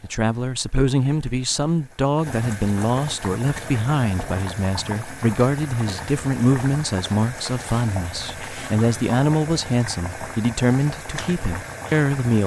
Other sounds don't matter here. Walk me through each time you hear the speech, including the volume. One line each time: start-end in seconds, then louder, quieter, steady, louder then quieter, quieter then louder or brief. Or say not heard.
0.0-12.4 steady.